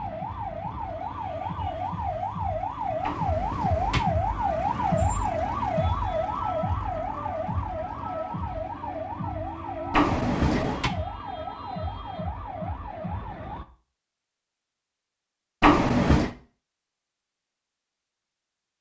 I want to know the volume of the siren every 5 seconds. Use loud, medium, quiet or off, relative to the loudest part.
loud, loud, medium, off.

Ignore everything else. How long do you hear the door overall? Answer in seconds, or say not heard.
3 s.